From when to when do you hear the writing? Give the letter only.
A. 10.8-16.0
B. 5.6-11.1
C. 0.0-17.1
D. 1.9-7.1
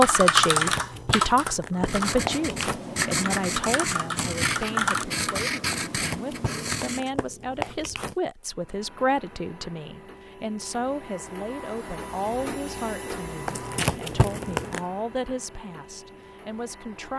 D.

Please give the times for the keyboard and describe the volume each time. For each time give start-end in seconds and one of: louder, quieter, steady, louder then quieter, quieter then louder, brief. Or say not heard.
0.0-5.5 quieter then louder.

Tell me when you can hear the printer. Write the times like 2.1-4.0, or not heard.
8.3-17.1.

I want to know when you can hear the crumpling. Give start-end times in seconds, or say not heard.
0.5-2.8, 5.8-8.2, 13.4-14.8.